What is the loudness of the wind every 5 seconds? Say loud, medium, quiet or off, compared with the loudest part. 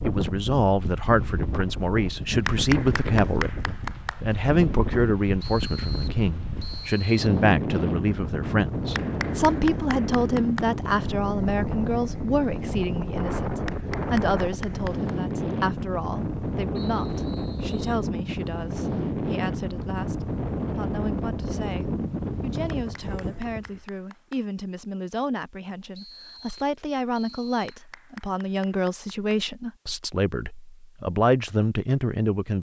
loud, loud, loud, loud, loud, off, off.